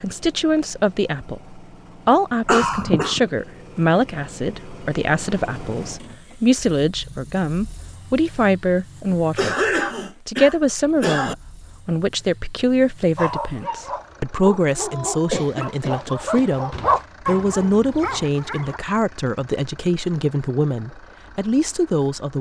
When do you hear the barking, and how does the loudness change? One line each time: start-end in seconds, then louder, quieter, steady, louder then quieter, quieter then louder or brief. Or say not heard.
13.2-18.8 louder then quieter.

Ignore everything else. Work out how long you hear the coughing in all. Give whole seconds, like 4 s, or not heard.
4 s.